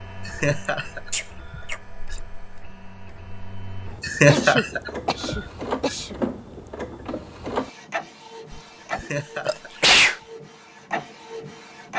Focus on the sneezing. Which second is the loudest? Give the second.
10 s.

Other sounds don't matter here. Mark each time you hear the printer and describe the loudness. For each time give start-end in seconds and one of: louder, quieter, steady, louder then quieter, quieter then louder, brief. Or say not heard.
0.0-11.9 louder.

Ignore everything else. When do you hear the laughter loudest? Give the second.
4 s.